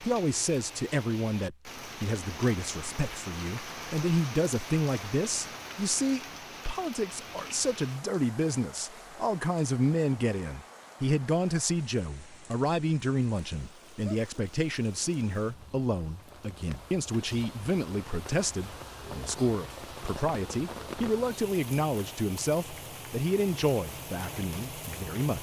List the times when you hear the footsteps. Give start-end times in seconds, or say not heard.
not heard.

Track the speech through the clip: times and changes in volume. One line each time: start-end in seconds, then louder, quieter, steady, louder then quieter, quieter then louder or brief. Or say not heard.
0.0-25.3 steady.